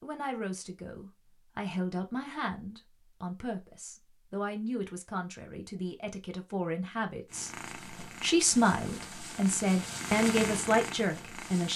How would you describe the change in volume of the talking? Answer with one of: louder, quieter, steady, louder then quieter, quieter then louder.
louder.